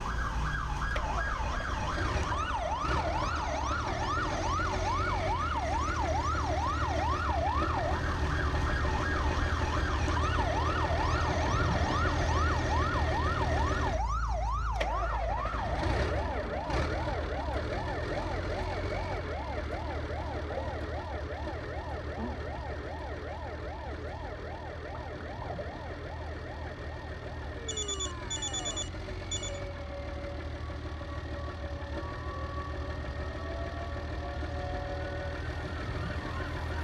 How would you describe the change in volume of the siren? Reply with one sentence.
The loudness of the siren goes down.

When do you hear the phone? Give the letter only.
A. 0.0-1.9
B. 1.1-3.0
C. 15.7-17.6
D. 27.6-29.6
D.